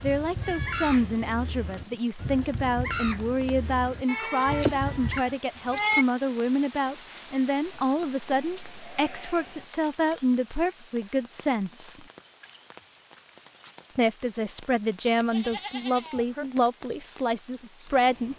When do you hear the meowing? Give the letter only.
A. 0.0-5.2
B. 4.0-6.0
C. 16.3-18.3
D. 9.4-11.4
B.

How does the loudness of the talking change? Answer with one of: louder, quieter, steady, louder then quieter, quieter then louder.
steady.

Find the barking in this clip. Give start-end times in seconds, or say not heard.
not heard.